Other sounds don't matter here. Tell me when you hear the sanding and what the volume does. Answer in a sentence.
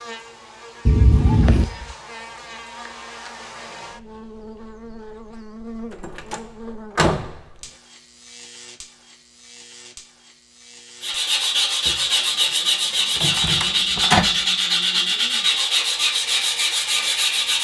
You can hear the sanding from 11.0 to 17.5 s, at a steady volume.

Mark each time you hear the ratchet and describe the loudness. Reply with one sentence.
You can't hear the ratchet here.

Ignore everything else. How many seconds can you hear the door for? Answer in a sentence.
The door can be heard for 4 seconds in total.